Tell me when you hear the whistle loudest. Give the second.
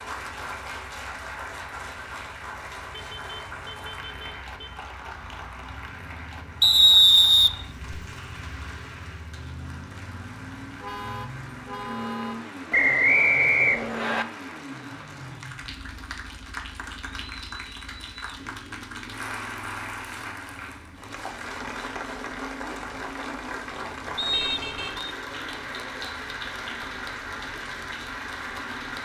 7 s.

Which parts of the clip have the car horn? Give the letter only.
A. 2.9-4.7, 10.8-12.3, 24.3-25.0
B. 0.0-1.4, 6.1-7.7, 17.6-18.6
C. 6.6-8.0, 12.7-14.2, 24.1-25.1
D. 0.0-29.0
A.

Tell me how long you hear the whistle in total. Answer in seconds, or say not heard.
4 s.